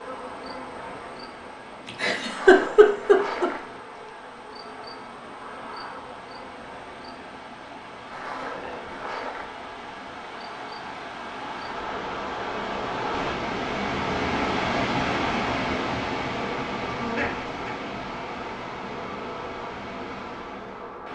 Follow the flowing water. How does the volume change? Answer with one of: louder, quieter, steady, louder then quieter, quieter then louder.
louder then quieter.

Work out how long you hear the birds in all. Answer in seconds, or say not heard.
not heard.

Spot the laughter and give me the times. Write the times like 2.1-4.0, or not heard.
1.9-3.5, 16.9-17.8.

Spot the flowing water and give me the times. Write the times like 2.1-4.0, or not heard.
0.0-21.0.